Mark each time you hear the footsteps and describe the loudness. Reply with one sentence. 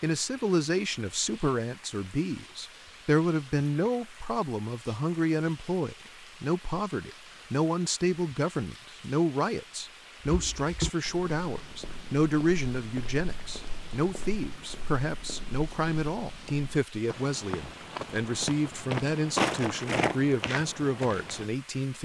You can hear the footsteps from 10.2 to 21.4 s, getting quieter then louder.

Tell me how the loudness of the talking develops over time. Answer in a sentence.
The loudness of the talking stays about the same.